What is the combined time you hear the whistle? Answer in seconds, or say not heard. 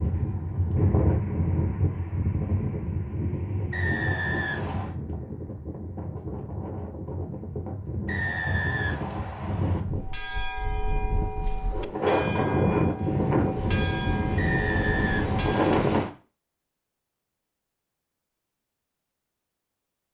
5 s.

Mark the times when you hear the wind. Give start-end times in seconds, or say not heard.
0.0-16.1.